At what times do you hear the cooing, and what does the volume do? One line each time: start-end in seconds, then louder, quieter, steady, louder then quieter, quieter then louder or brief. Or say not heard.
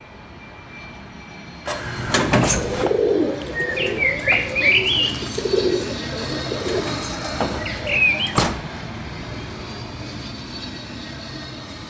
2.5-8.3 quieter.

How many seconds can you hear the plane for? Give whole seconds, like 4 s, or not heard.
12 s.